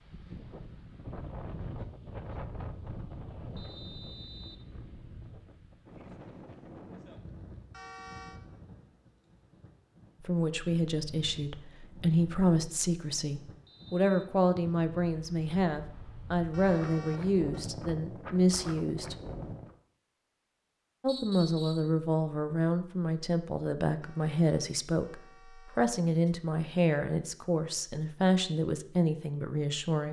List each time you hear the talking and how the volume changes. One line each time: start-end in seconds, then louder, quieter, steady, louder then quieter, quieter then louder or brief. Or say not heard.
10.2-19.1 steady
21.0-30.0 steady.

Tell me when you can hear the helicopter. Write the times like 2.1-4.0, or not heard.
not heard.